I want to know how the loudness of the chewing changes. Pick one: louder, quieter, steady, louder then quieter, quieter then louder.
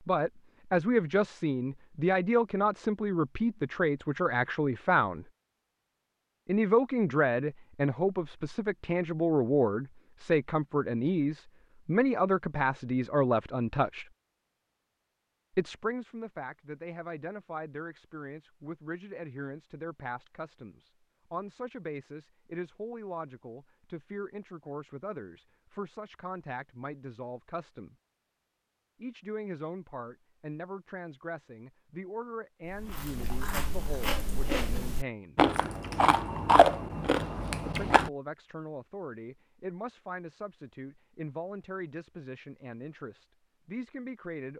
louder then quieter.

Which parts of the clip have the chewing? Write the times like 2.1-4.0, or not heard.
32.7-38.1.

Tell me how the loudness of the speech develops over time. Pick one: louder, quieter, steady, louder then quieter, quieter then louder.
quieter.